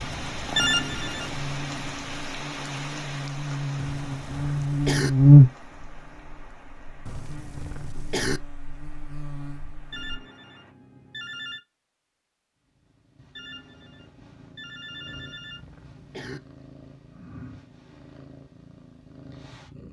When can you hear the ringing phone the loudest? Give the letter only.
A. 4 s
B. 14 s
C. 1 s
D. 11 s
C.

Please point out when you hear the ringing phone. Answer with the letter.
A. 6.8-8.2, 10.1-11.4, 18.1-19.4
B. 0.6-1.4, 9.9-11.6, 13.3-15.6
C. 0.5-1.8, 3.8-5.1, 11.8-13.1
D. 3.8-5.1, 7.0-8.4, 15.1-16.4
B.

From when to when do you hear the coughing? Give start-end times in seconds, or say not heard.
3.8-5.1, 7.0-8.4, 15.1-16.4.